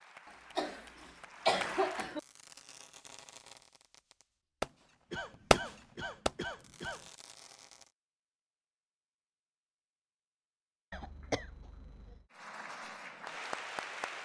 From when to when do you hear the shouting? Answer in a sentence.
You can't hear the shouting here.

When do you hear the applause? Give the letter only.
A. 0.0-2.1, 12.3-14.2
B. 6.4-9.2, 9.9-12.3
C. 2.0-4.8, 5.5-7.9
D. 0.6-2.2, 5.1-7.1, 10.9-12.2
A.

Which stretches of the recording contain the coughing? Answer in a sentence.
You can hear the coughing from 0.6 to 2.2 s, from 5.1 to 7.1 s and from 10.9 to 12.2 s.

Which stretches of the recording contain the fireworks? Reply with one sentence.
The fireworks can be heard from 2.0 to 4.8 s and from 5.5 to 7.9 s.